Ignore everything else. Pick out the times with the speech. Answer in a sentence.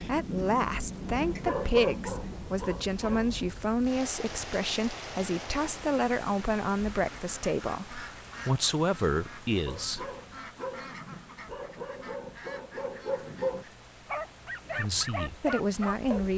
The speech can be heard from 0.0 to 10.1 s and from 14.8 to 16.3 s.